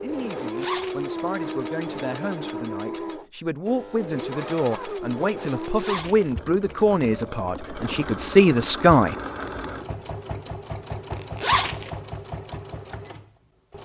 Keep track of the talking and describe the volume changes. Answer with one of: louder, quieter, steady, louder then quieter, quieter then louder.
louder.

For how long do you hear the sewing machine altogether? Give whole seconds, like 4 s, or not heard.
14 s.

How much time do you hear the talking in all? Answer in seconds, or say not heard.
9 s.